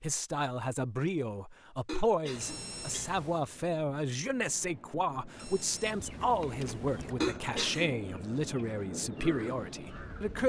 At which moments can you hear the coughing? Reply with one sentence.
You can hear the coughing from 1.9 to 3.5 s and from 7.2 to 7.9 s.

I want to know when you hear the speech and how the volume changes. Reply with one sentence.
You can hear the speech from 0.0 to 10.4 s, at a steady volume.